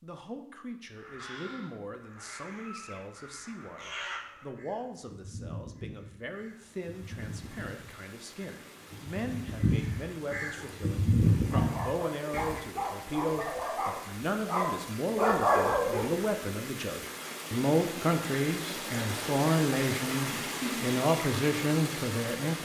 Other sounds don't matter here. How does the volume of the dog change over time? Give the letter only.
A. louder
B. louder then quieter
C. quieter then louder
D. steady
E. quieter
A.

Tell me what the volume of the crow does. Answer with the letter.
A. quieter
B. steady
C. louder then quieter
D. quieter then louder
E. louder
E.